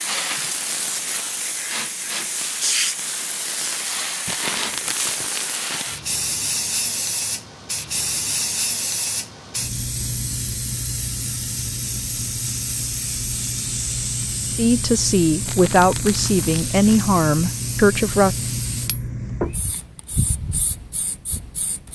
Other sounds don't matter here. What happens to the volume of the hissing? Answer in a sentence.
The loudness of the hissing stays about the same.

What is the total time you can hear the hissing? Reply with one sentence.
The hissing can be heard for 22 seconds in total.